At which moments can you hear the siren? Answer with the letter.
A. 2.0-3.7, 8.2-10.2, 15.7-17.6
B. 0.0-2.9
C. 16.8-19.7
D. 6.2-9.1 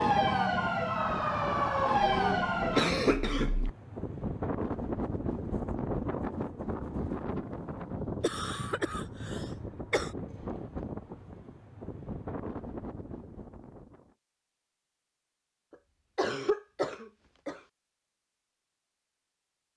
B.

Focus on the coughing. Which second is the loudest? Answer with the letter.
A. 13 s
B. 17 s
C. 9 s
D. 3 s
D.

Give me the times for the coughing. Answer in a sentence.
The coughing can be heard from 2.0 to 3.7 s, from 8.2 to 10.2 s and from 15.7 to 17.6 s.